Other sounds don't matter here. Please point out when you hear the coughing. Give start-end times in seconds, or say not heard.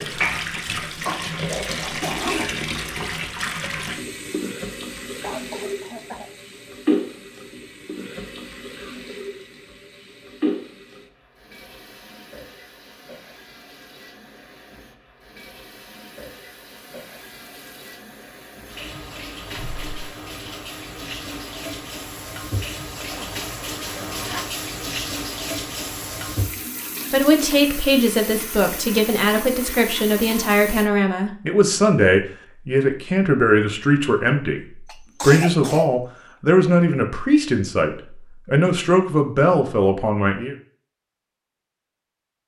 5.2-6.3, 19.5-20.1, 34.9-36.0.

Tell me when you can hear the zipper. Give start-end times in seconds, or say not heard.
2.0-2.6, 23.0-24.5.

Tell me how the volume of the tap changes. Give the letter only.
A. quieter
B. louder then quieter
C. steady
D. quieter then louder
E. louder
D.